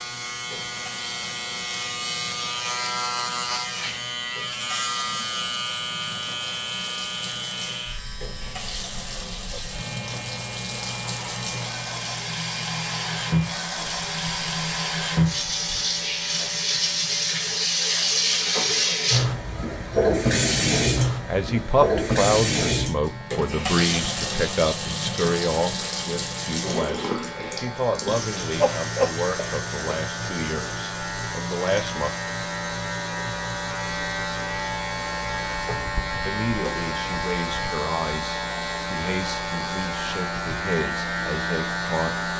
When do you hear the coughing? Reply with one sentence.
You can hear the coughing from 28.6 to 29.9 s.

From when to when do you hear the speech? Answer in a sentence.
You can hear the speech from 21.2 to 32.1 s and from 36.2 to 42.1 s.